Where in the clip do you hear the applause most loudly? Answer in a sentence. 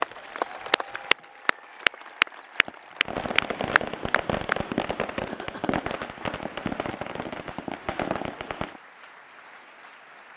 The volume of the applause peaks at 2 seconds.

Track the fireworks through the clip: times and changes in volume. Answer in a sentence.
The fireworks can be heard from 2.6 to 8.8 s, at a steady volume.